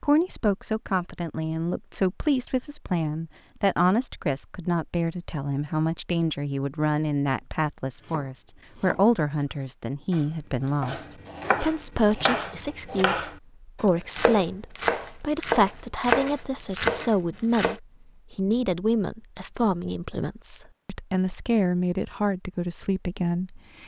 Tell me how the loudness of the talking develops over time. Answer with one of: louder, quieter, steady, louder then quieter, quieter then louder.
steady.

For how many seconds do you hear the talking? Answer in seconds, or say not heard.
24 s.